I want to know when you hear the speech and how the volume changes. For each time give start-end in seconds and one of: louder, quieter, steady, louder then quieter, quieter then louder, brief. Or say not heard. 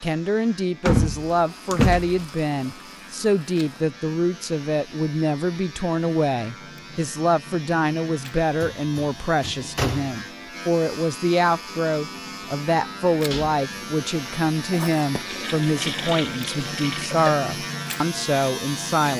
0.0-19.1 steady.